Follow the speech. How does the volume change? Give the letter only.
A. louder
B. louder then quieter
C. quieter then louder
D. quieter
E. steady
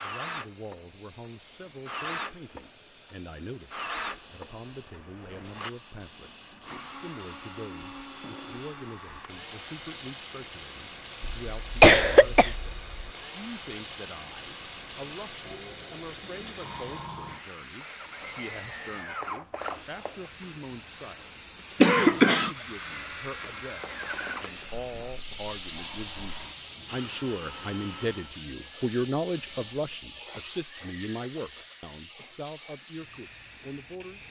A.